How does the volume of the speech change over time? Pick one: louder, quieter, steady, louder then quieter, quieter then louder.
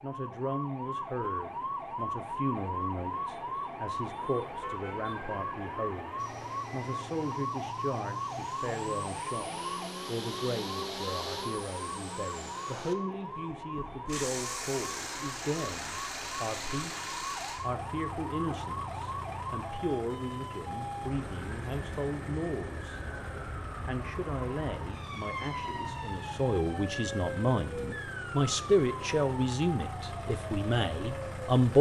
louder.